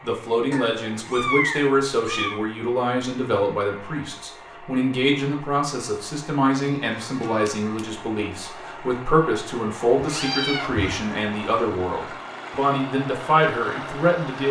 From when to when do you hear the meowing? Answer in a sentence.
You can hear the meowing from 0.5 to 2.4 s, from 6.5 to 7.8 s and from 10.0 to 11.0 s.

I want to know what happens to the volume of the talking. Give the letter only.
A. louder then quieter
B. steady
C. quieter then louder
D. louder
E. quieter
B.